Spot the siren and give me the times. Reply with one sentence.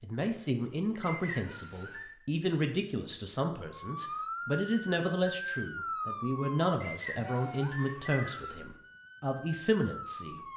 You can hear the siren from 3.7 to 10.5 s.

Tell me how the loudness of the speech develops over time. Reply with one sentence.
The volume of the speech stays about the same.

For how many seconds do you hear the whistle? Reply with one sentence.
The whistle can be heard for 3 seconds in total.